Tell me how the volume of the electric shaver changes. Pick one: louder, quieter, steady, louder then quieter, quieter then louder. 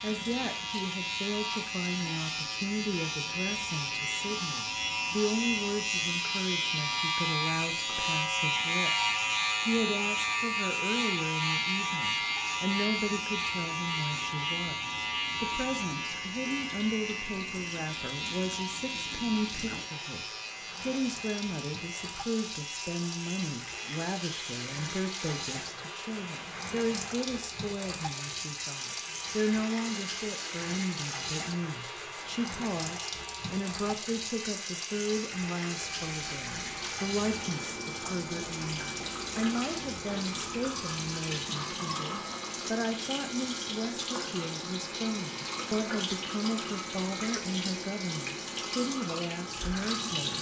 quieter.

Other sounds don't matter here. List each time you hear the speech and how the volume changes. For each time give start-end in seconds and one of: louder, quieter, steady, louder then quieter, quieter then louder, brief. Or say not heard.
0.0-50.3 steady.